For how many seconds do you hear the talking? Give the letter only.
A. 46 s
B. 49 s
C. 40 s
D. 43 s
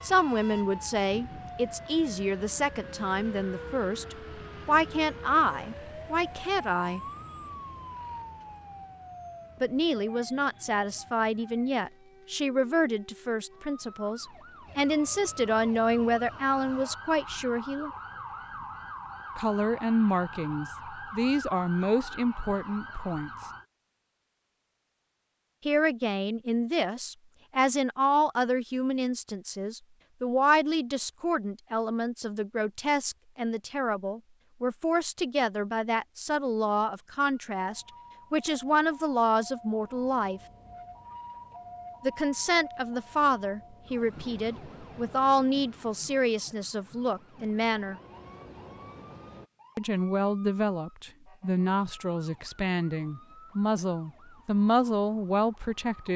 A.